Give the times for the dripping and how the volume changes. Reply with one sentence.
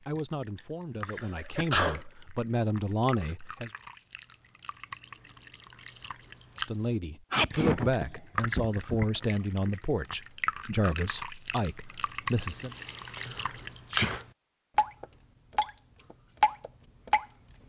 The dripping can be heard from 0.0 to 17.6 s, getting louder.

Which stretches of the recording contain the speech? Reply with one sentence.
The speech can be heard from 0.1 to 3.7 s and from 6.6 to 12.7 s.